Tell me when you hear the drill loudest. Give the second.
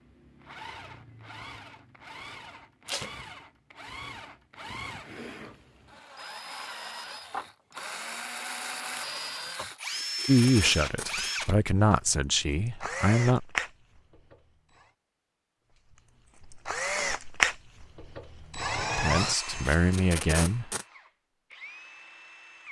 17 s.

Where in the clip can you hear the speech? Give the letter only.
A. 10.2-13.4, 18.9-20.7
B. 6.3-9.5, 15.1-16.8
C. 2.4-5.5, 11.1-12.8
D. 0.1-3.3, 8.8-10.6
A.